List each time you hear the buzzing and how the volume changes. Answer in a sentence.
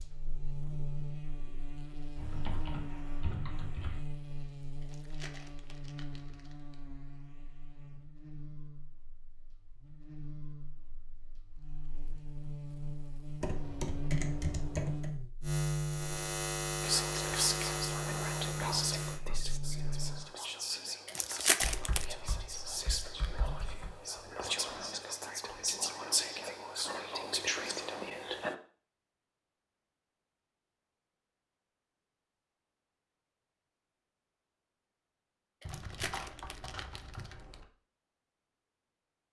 The buzzing can be heard from 0.0 to 20.3 s, getting quieter then louder.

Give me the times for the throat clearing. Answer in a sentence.
You can't hear the throat clearing here.